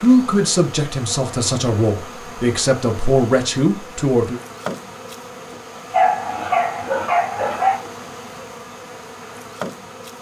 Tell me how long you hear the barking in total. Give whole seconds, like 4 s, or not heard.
2 s.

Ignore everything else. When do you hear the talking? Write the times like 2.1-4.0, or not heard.
0.0-4.4.